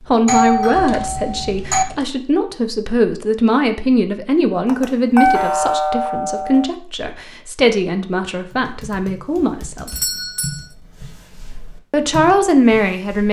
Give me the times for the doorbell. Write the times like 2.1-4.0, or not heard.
0.2-1.9, 4.7-6.7, 9.8-10.7.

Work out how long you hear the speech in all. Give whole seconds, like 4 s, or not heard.
11 s.